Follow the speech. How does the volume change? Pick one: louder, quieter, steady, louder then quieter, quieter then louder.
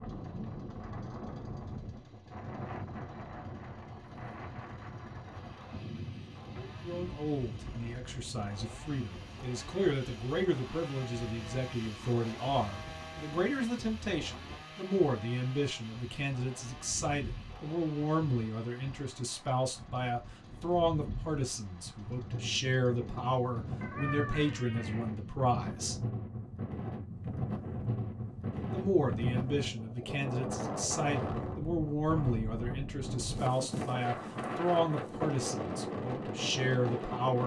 steady.